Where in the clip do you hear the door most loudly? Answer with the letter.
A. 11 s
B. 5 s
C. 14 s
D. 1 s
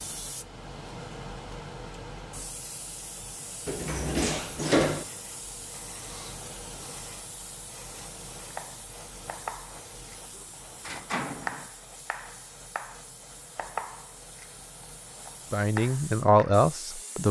B.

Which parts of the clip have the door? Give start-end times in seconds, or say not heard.
3.6-5.0, 10.3-11.7.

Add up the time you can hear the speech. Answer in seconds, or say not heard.
2 s.